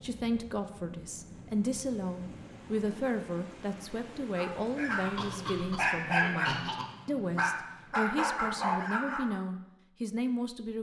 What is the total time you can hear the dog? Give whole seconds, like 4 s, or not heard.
5 s.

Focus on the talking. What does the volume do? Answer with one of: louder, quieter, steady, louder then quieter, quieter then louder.
steady.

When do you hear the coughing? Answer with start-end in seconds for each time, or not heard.
4.9-6.8.